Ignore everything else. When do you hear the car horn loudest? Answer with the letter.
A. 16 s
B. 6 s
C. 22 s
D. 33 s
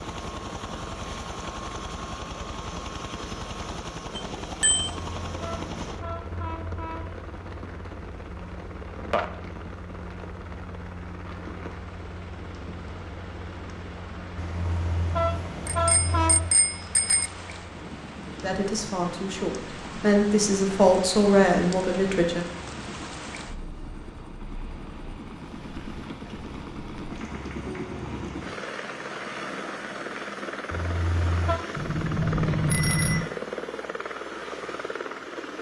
A.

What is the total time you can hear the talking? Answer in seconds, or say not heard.
4 s.